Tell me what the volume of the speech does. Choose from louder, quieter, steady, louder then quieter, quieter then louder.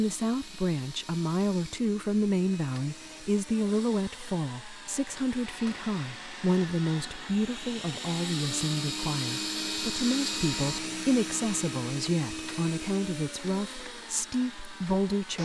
steady.